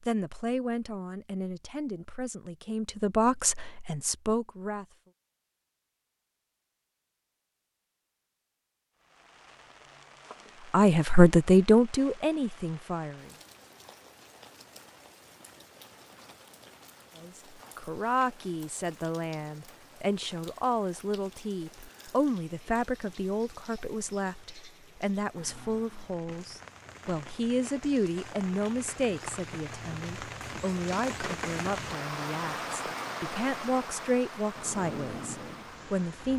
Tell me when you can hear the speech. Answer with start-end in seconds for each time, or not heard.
0.0-4.8, 10.7-13.3, 17.2-36.3.